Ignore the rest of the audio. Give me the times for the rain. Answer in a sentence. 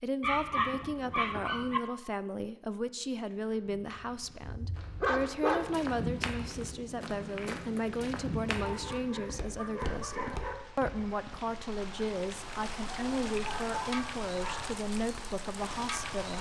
The rain can be heard from 6.3 to 16.3 s.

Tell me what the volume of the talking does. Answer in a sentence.
The volume of the talking stays about the same.